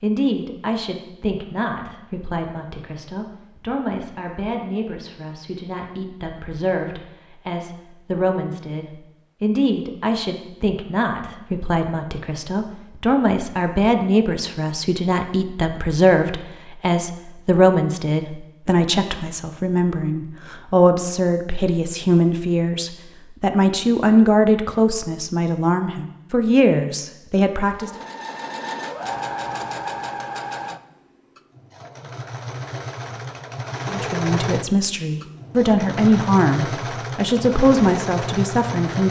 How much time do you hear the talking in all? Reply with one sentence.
You can hear the talking for 33 seconds altogether.